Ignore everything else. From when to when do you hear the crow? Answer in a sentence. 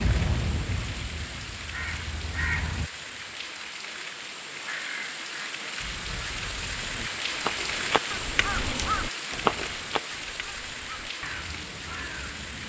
The crow can be heard from 0.0 to 2.9 s and from 4.7 to 12.6 s.